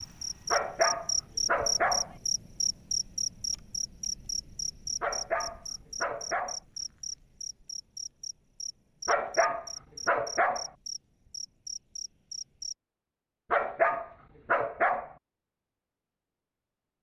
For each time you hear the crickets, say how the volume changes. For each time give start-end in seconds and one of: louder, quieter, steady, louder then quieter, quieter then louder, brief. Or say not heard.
0.0-12.8 quieter.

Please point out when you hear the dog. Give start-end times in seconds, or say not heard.
0.5-2.1, 5.0-6.6, 9.1-10.7, 13.5-15.1.